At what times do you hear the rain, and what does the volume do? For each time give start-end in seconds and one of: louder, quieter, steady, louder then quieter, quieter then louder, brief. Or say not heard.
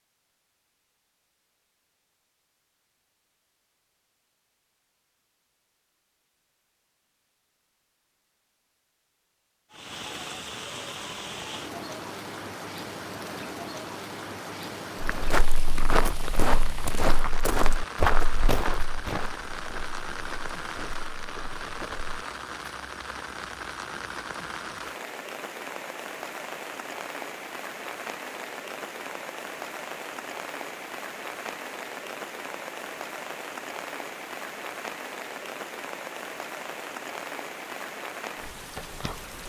9.7-39.4 steady.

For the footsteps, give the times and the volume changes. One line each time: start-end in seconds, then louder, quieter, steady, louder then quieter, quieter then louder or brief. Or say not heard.
15.1-22.2 quieter.